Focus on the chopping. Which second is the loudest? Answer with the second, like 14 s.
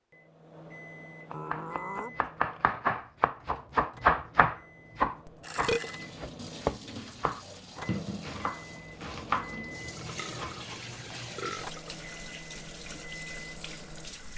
4 s.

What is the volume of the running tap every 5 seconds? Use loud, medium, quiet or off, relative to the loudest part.
off, loud, loud.